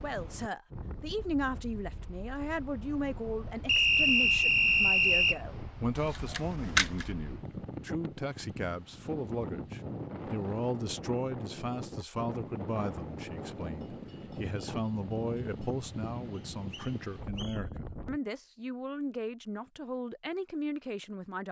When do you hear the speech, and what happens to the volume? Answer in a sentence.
The speech can be heard from 0.0 to 21.4 s, at a steady volume.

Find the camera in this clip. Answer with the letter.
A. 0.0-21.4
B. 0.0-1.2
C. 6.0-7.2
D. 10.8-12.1
C.